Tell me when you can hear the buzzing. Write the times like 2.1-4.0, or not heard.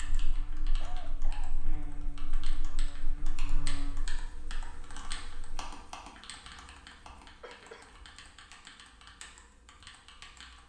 0.0-5.8.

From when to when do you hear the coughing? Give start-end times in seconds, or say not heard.
0.8-1.6, 7.4-7.8.